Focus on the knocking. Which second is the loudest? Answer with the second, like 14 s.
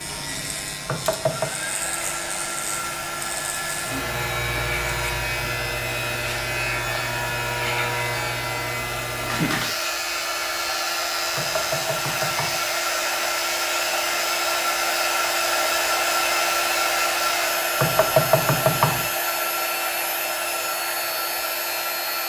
18 s.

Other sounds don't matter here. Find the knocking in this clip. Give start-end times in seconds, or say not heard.
0.8-1.5, 11.3-12.7, 17.8-19.1.